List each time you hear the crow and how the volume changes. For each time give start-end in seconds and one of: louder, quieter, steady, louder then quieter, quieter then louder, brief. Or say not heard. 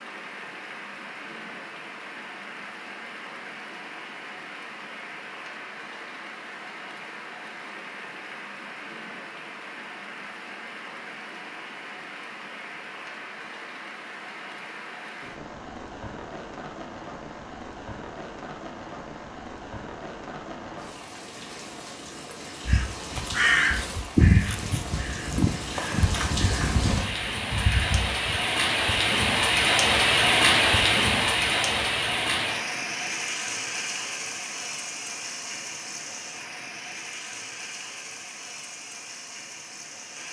22.6-28.4 quieter.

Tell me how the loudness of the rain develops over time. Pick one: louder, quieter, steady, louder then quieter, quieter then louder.
louder then quieter.